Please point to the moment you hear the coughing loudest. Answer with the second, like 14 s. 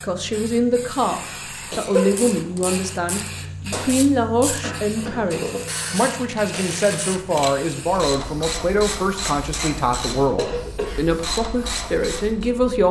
2 s.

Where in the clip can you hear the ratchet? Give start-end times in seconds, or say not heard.
1.9-12.5.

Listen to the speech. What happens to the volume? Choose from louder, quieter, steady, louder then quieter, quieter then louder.
steady.